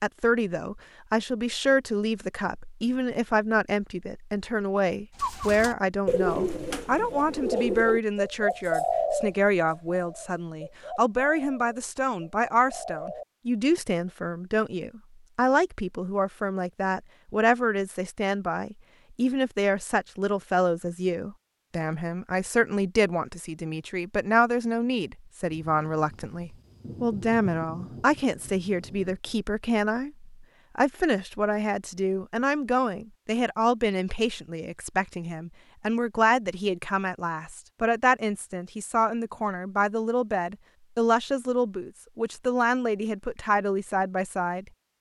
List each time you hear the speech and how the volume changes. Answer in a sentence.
You can hear the speech from 0.0 to 44.6 s, at a steady volume.